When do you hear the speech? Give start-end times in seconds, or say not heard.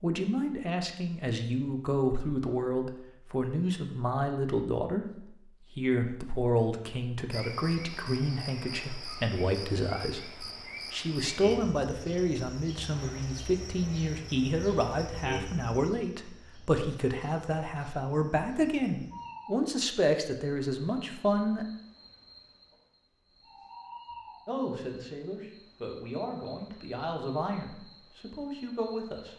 0.0-21.6, 24.4-29.3.